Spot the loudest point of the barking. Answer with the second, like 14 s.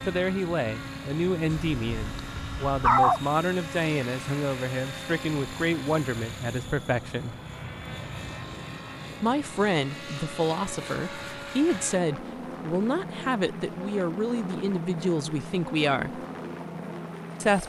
3 s.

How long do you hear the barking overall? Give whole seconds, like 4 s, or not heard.
2 s.